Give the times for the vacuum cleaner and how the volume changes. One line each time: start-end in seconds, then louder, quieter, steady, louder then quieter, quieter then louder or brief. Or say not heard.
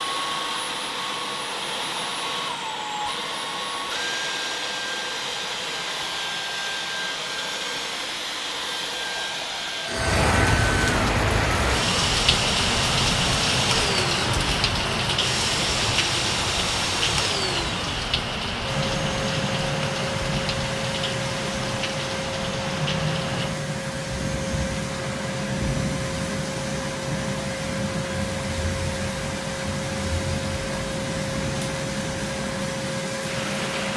0.0-33.9 steady.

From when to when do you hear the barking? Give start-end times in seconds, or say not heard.
not heard.